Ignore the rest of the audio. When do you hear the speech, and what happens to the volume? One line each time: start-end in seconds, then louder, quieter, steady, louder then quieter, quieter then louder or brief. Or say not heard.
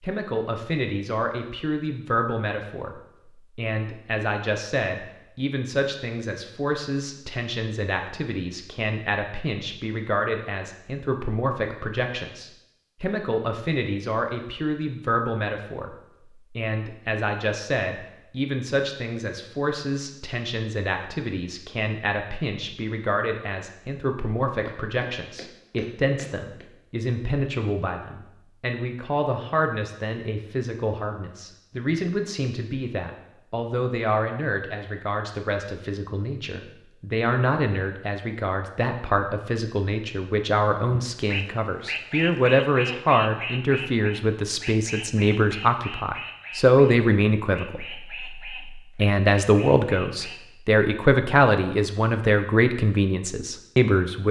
0.0-54.2 louder.